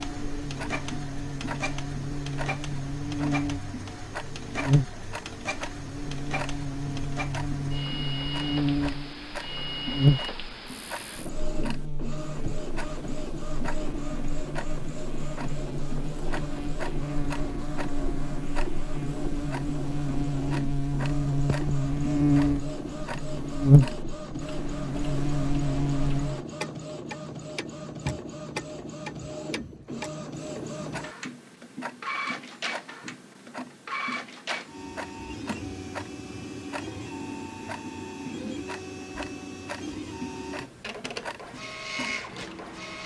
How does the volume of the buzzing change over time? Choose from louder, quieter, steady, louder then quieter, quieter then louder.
quieter then louder.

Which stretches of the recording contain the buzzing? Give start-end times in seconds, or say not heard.
0.0-26.4.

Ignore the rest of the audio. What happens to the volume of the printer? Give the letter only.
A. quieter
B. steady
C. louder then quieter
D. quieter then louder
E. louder
B.